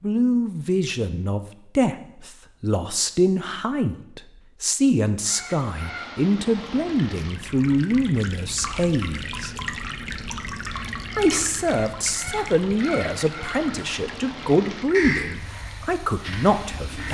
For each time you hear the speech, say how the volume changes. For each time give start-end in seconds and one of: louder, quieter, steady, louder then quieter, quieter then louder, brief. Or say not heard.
0.0-9.6 steady
11.2-17.0 steady.